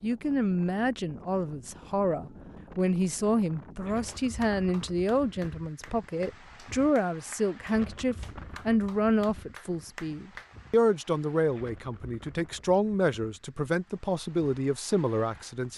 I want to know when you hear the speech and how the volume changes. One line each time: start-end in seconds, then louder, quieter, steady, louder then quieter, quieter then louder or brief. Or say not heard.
0.0-15.7 steady.